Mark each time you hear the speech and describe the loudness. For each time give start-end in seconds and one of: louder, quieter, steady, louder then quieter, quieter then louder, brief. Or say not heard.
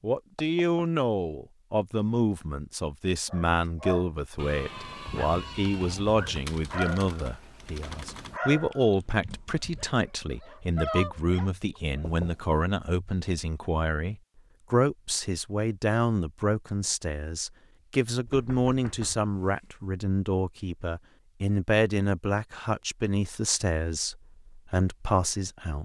0.0-25.8 steady.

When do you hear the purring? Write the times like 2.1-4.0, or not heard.
not heard.